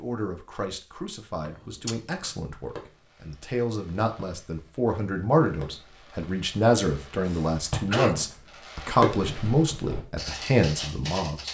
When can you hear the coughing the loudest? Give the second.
8 s.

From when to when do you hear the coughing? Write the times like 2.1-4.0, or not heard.
1.4-2.3, 7.2-8.2.